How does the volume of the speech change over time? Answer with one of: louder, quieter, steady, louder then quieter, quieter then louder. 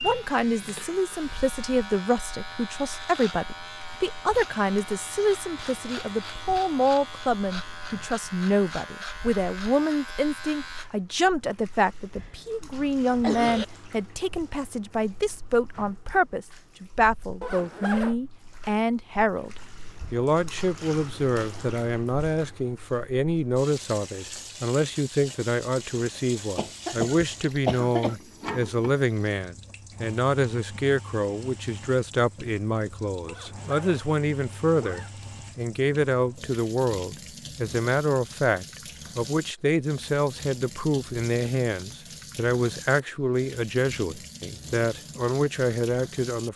steady.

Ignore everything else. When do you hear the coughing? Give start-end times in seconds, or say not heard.
12.2-13.7, 26.6-28.1.